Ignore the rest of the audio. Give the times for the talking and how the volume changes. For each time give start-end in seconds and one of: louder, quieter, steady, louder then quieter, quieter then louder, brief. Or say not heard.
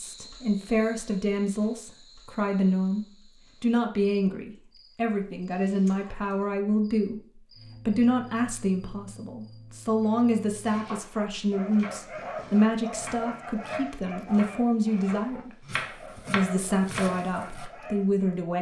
0.0-18.5 steady.